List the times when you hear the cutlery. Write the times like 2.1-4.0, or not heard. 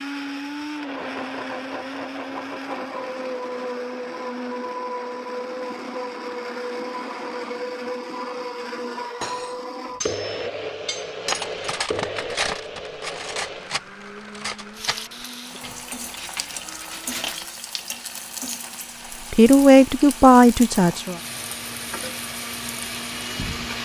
9.2-17.4.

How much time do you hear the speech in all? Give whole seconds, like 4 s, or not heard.
2 s.